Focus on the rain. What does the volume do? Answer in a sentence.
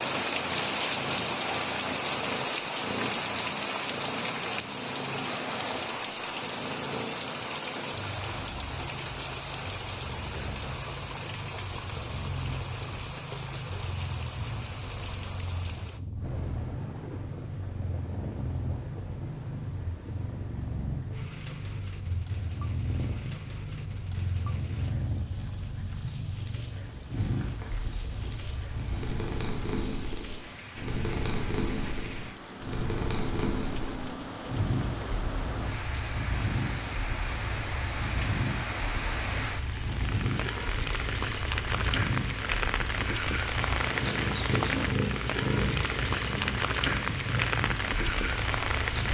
The loudness of the rain goes down, then up.